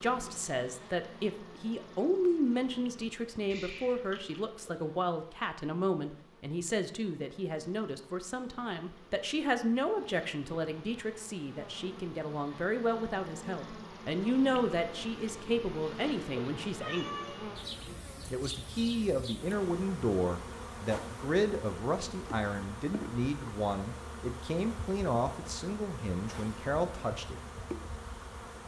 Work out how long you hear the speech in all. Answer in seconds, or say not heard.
26 s.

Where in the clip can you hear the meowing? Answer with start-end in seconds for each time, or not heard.
3.5-4.4, 16.8-18.4.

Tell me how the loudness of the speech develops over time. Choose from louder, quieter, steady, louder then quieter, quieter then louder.
steady.